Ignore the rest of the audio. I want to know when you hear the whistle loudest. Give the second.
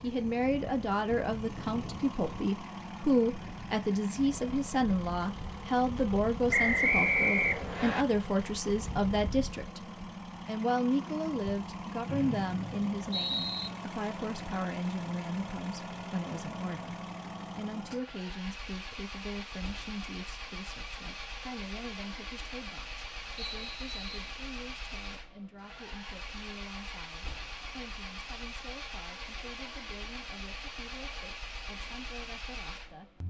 7 s.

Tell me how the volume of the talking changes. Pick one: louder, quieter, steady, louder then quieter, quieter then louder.
quieter.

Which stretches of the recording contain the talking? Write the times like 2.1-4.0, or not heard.
0.0-9.8, 10.4-33.2.